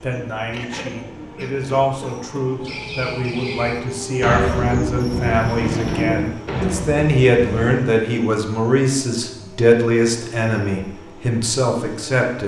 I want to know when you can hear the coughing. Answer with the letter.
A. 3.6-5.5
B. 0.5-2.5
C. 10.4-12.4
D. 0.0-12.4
B.